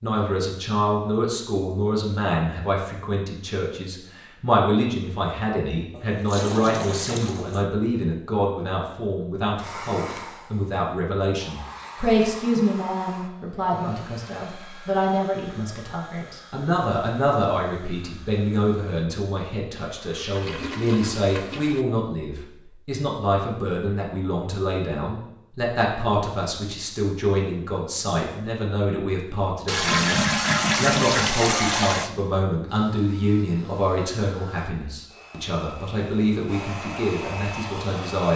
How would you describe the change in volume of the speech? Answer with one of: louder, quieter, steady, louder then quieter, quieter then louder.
steady.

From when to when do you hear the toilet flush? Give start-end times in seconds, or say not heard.
5.9-7.7, 19.8-21.9, 29.6-32.1.